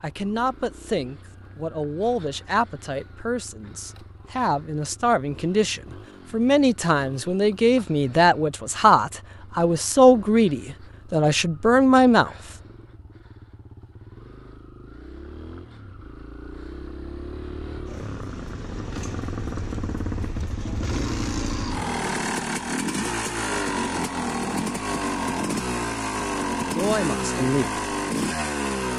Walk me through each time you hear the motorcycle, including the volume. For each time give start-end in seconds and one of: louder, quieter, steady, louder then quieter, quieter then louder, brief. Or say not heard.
0.0-28.9 louder.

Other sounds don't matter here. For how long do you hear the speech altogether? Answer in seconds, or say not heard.
13 s.